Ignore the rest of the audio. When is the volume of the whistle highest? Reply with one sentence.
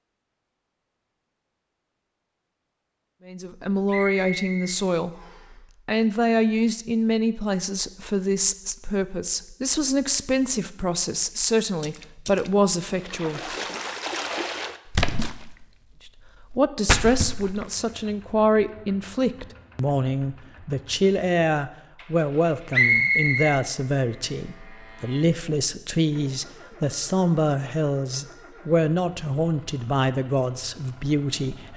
The volume of the whistle peaks at 23 seconds.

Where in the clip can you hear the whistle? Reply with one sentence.
You can hear the whistle from 3.9 to 5.5 s and from 22.7 to 23.6 s.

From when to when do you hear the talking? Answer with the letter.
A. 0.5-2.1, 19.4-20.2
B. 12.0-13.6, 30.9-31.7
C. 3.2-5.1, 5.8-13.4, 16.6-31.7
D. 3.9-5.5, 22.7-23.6
C.